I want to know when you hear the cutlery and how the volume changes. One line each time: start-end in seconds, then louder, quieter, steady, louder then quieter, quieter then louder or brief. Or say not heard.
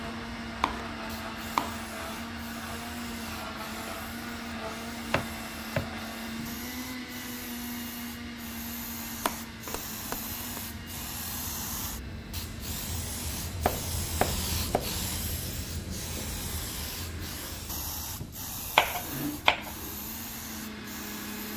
not heard.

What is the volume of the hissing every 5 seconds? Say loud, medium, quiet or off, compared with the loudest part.
medium, medium, loud, loud, medium.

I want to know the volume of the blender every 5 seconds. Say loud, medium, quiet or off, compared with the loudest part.
loud, loud, medium, medium, loud.